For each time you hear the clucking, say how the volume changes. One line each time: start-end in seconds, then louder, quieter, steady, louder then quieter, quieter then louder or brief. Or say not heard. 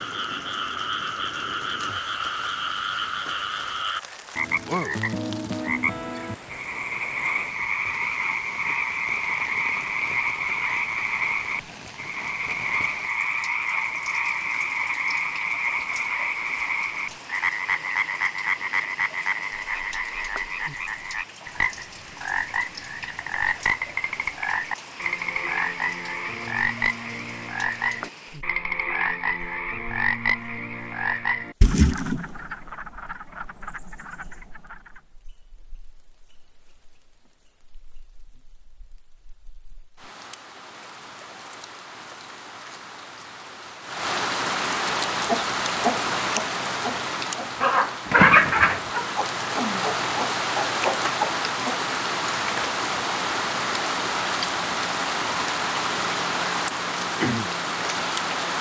45.1-51.8 louder then quieter.